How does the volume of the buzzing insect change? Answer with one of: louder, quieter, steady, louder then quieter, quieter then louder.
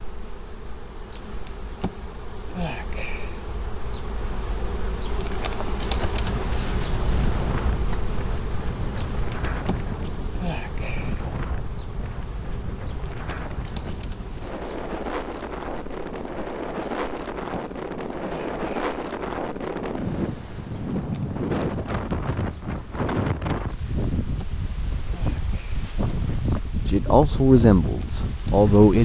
quieter.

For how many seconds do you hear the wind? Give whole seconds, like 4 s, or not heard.
23 s.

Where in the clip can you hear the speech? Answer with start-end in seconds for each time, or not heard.
26.9-29.0.